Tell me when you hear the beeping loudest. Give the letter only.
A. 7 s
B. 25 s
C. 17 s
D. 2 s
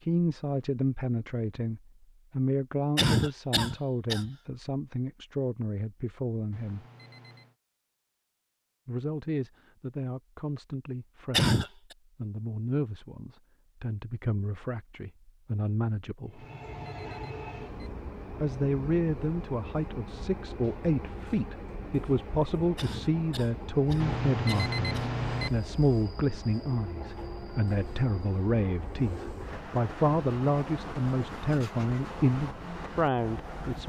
B.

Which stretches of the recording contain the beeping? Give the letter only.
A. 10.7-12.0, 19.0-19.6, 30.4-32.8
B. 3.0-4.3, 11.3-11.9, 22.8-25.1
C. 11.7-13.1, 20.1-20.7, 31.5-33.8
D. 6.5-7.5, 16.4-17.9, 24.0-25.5
D.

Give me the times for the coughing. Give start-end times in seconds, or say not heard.
3.0-4.3, 11.3-11.9, 22.8-25.1.